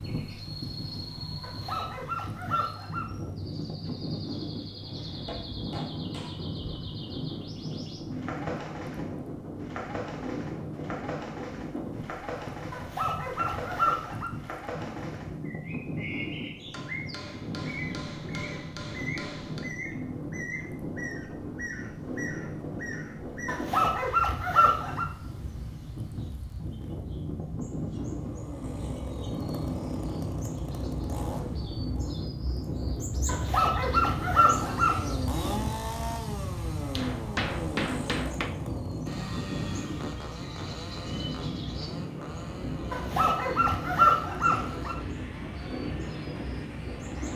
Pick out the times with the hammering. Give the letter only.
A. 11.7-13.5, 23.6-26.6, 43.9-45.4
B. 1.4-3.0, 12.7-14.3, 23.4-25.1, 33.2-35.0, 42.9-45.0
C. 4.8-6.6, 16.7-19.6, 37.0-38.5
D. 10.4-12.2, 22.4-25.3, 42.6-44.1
C.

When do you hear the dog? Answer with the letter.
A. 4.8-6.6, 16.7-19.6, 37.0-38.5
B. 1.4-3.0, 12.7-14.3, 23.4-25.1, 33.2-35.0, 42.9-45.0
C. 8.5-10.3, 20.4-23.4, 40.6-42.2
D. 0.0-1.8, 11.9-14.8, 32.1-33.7
B.